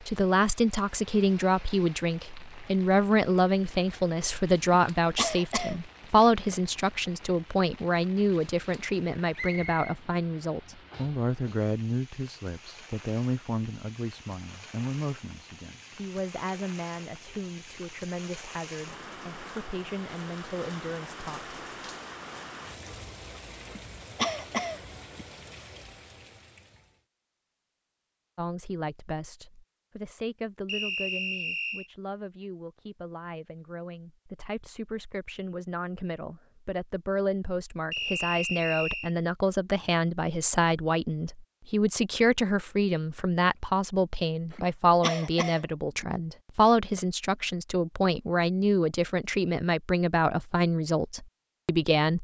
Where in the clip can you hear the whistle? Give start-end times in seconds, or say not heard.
9.3-9.9, 30.6-31.9, 37.9-39.1.